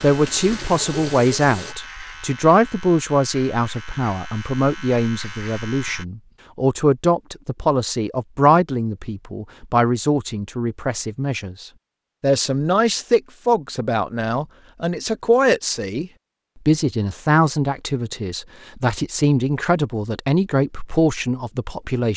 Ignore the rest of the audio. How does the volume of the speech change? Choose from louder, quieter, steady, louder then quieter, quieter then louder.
steady.